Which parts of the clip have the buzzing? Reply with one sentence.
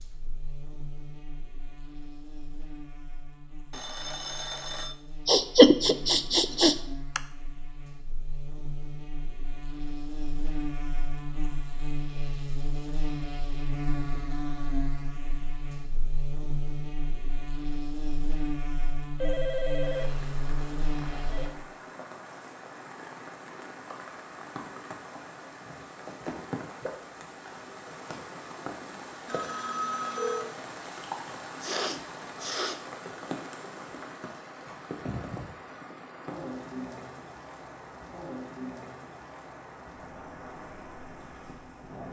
The buzzing can be heard from 0.0 to 21.5 s.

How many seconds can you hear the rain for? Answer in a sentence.
You can hear the rain for 22 seconds altogether.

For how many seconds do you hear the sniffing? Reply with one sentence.
The sniffing can be heard for 3 seconds in total.